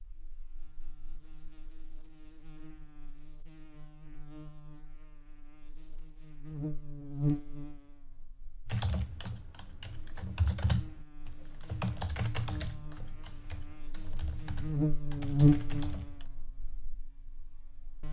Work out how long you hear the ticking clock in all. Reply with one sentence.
The ticking clock can't be heard in this clip.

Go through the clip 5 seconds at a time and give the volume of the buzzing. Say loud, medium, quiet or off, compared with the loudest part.
quiet, medium, medium, loud.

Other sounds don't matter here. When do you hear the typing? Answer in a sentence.
You can hear the typing from 8.7 to 16.2 s.